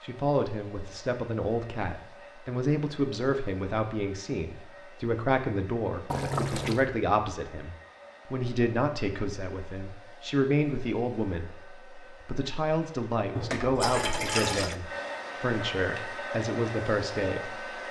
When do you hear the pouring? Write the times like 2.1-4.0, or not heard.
6.1-6.8, 13.3-14.8.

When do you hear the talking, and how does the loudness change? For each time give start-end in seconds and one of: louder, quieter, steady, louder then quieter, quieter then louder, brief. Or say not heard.
0.0-17.6 steady.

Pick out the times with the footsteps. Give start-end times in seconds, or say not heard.
not heard.